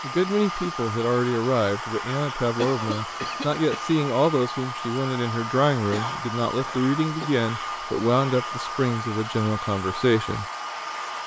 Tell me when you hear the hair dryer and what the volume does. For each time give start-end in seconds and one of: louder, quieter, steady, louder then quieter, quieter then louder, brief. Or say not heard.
0.0-11.2 steady.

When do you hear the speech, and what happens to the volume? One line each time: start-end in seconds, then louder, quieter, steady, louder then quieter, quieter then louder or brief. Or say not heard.
0.0-10.4 steady.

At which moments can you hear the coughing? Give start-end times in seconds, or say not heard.
2.5-3.8, 5.9-7.3.